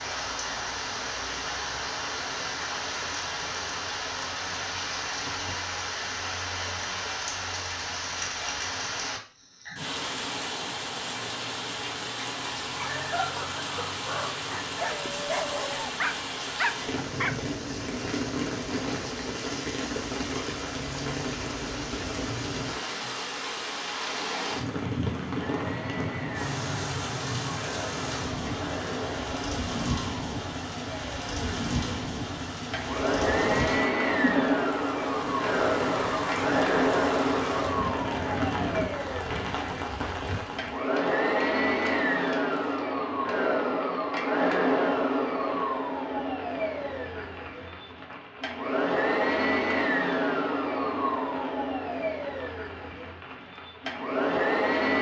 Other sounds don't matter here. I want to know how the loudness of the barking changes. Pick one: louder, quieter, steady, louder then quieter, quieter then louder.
louder.